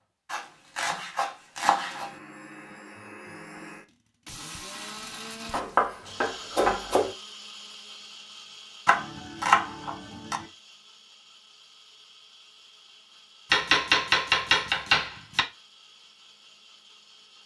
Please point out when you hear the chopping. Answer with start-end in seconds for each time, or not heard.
0.3-2.1, 5.5-7.1, 8.8-10.4, 13.5-15.4.